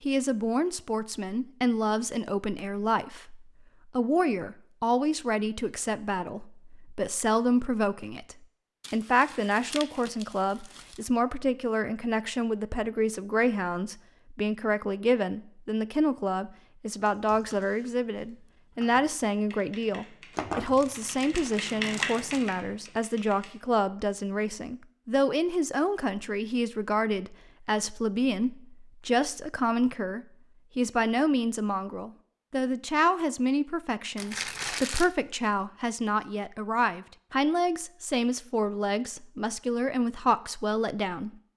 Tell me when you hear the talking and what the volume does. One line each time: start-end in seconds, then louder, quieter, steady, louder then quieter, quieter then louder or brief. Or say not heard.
0.0-41.3 steady.